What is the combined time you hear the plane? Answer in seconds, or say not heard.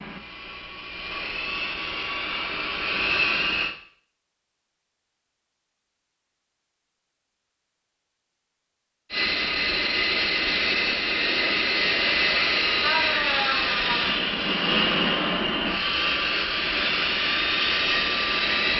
13 s.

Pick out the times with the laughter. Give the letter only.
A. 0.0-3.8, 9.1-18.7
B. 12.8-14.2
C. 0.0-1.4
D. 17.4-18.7
B.